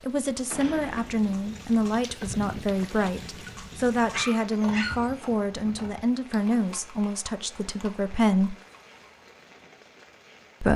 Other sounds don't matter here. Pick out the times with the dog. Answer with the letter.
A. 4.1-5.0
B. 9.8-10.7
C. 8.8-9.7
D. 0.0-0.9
A.